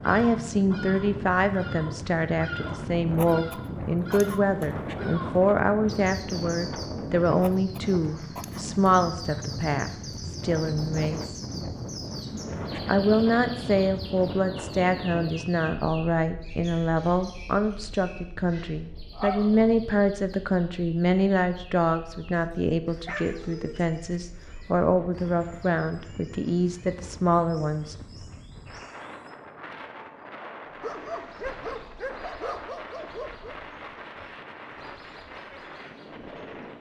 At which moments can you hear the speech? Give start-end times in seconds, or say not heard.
0.0-11.4, 12.8-27.9.